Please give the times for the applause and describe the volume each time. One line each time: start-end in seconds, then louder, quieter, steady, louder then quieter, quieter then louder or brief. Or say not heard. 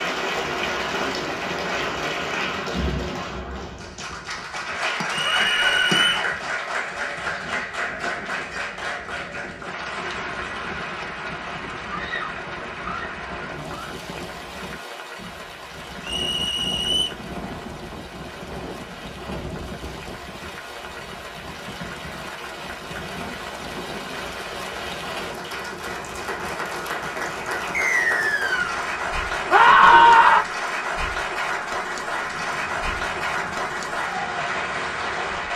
0.0-35.5 quieter then louder.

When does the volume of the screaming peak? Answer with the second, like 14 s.
30 s.